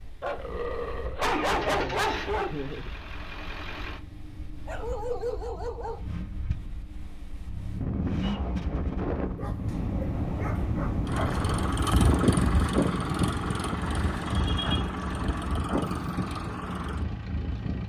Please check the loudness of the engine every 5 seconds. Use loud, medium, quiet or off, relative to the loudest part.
medium, medium, loud, loud.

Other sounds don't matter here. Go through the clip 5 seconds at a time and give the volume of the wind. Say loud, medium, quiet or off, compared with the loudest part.
quiet, medium, loud, medium.